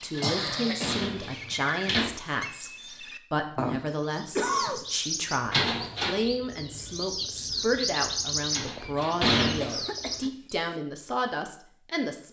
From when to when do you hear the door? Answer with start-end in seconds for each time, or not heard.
0.1-2.1, 5.5-6.2, 8.5-9.8.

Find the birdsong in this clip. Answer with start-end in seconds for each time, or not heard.
0.0-10.5.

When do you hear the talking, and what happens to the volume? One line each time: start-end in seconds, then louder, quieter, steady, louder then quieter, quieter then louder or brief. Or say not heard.
0.0-12.2 steady.